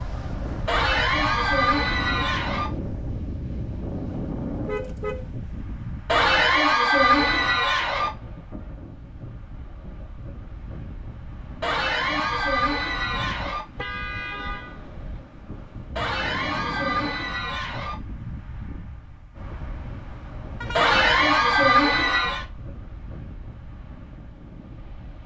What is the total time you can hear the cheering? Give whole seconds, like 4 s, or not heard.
10 s.